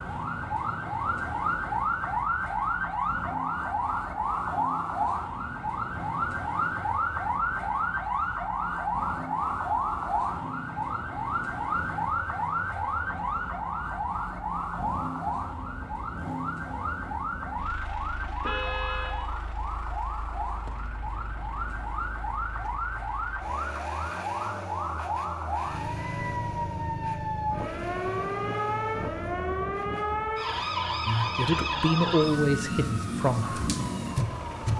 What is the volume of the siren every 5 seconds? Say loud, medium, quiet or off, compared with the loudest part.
loud, loud, loud, medium, medium, loud, loud.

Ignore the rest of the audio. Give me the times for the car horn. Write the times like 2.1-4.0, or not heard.
18.4-19.2.